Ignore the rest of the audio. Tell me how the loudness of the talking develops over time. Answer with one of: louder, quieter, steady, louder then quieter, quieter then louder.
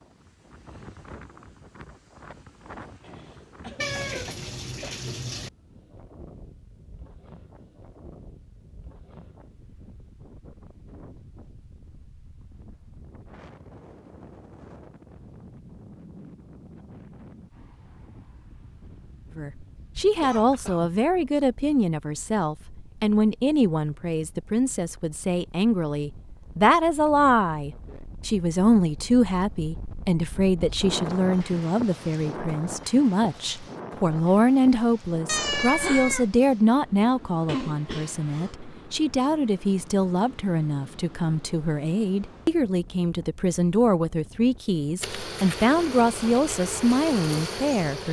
steady.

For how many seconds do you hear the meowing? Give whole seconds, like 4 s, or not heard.
3 s.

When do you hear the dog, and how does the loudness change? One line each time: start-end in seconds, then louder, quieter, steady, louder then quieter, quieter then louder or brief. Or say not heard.
not heard.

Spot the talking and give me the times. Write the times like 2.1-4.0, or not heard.
19.4-48.0.